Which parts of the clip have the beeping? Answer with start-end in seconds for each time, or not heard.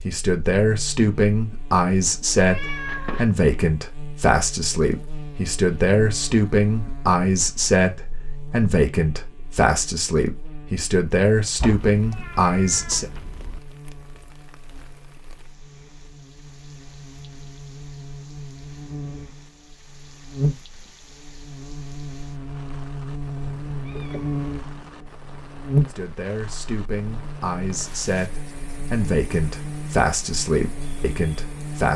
not heard.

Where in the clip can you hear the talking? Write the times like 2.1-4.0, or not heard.
0.1-13.1, 25.9-31.9.